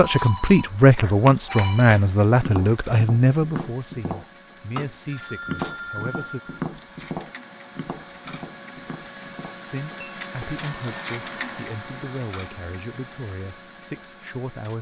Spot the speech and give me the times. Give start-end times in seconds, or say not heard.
0.0-6.4, 9.6-14.7.